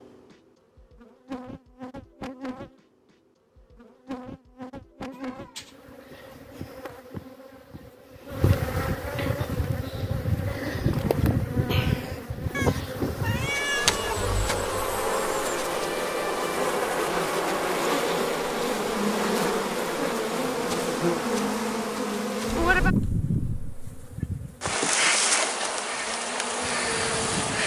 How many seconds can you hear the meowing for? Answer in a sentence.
You can hear the meowing for 4 seconds altogether.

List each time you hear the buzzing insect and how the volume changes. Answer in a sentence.
The buzzing insect can be heard from 0.0 to 27.6 s, getting louder.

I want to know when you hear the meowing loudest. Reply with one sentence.
The volume of the meowing peaks at 14 seconds.